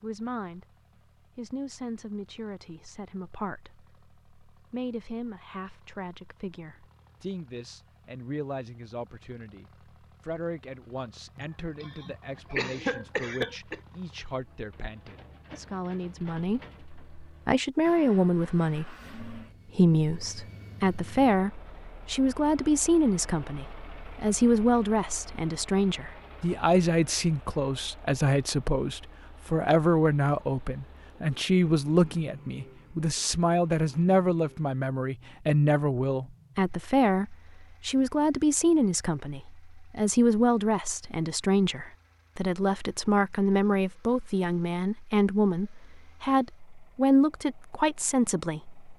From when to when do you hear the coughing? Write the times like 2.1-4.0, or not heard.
11.3-13.8.